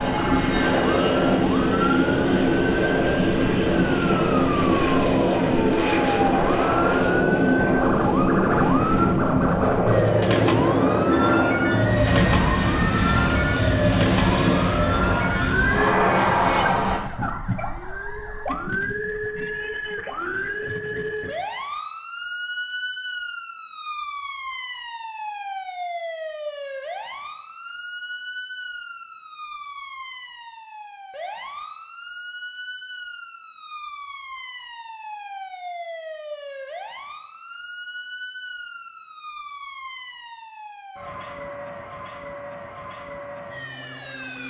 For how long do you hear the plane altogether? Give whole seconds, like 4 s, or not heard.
17 s.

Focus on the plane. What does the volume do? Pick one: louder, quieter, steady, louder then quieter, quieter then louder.
steady.